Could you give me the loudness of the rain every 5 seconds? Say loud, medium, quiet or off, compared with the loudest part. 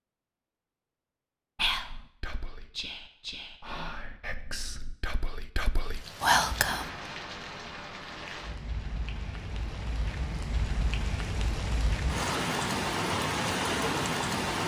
off, medium, loud.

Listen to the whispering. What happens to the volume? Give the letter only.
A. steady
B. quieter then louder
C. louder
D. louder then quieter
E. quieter
C.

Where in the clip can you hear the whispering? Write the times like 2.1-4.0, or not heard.
1.6-6.9.